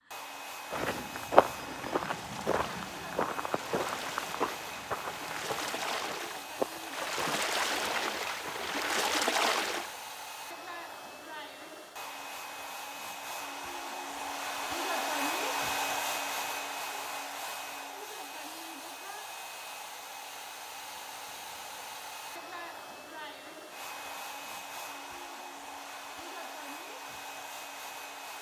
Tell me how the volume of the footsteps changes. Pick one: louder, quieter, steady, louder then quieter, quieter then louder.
quieter.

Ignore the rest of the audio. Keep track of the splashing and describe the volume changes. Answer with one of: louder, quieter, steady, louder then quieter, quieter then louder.
louder.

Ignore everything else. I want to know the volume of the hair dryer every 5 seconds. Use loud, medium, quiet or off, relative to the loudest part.
medium, medium, loud, loud, medium, medium.